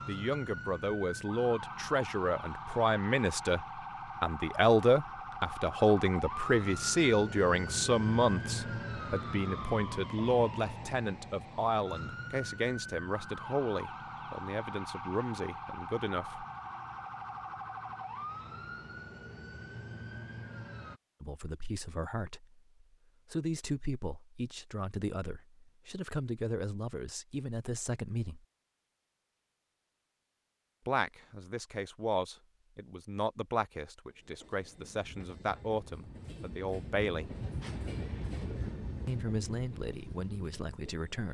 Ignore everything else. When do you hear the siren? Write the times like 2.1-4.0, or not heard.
0.0-21.0.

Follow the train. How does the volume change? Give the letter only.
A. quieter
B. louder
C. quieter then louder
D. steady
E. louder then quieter
E.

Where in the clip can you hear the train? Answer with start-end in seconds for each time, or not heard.
34.0-41.3.